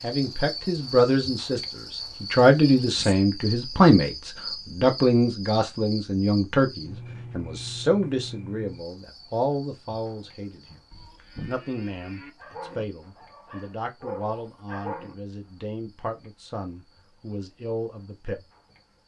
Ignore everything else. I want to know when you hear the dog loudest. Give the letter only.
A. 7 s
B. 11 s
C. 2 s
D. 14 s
D.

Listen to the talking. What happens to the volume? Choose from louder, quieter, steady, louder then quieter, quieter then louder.
quieter.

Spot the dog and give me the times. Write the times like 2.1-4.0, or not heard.
12.3-15.2.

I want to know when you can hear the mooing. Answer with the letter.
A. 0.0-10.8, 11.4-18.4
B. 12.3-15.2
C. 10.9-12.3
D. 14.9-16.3
C.